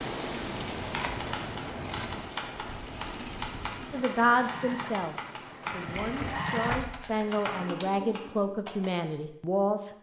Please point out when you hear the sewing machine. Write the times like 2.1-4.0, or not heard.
2.5-8.6.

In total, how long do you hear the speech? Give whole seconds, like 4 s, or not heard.
6 s.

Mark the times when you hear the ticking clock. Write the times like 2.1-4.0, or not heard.
not heard.